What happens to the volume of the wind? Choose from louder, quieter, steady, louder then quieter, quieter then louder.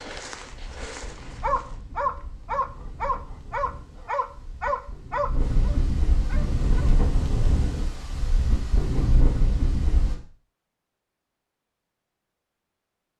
louder.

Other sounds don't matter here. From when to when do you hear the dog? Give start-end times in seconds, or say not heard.
0.0-6.9.